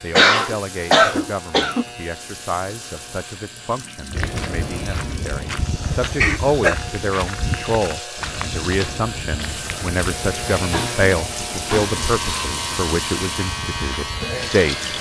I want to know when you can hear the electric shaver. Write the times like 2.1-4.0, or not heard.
0.0-14.9.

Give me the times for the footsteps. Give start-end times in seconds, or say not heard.
4.1-14.3.